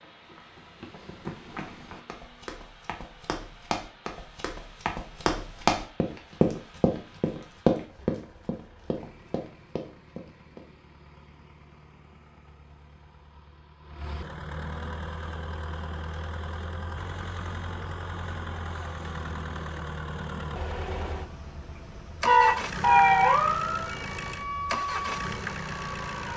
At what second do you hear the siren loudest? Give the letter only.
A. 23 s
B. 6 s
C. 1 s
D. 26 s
A.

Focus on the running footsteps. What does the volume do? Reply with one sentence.
The volume of the running footsteps goes up, then down.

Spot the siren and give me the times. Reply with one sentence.
The siren can be heard from 22.2 to 26.3 s.